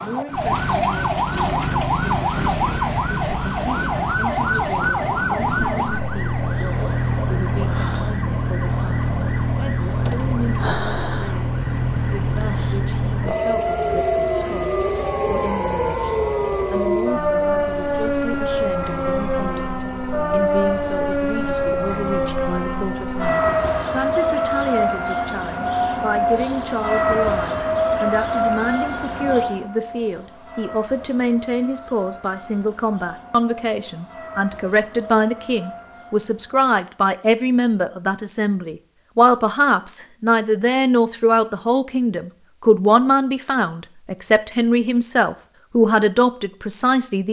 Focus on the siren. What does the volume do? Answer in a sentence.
The loudness of the siren goes down.